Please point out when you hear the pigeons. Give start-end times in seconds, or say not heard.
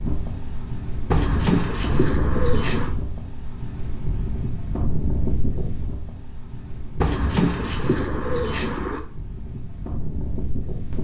1.1-3.0, 7.0-9.0.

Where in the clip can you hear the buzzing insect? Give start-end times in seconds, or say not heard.
not heard.